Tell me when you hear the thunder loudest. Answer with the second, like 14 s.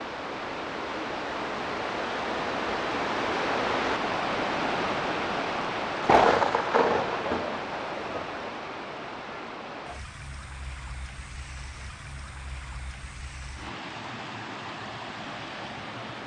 6 s.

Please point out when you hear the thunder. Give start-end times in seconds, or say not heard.
6.0-8.5.